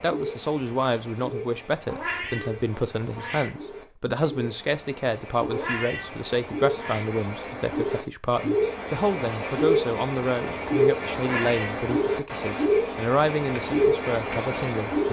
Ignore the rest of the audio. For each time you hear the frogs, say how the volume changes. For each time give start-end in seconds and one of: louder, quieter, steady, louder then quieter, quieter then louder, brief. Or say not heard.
0.0-15.0 louder.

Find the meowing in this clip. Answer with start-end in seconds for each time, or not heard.
1.9-3.5, 5.5-7.1, 11.2-12.0.